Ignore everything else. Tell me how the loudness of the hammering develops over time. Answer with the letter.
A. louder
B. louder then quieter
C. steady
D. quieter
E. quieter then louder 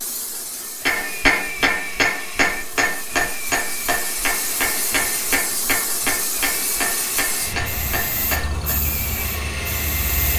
D.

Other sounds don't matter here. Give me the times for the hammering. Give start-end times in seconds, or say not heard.
0.8-8.8.